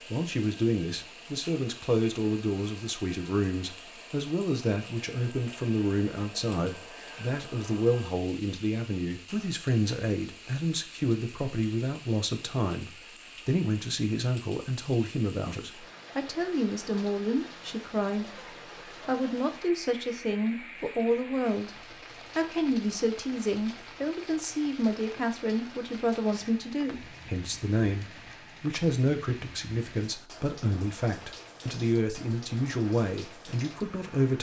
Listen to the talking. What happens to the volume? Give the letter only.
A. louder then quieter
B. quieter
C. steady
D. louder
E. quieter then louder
C.